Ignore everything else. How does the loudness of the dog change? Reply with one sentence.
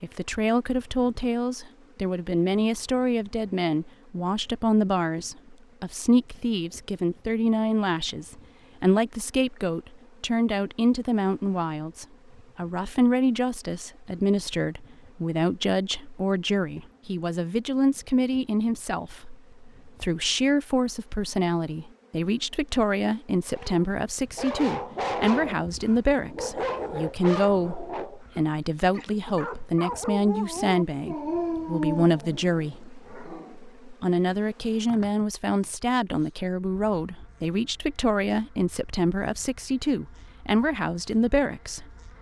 The loudness of the dog goes down, then up.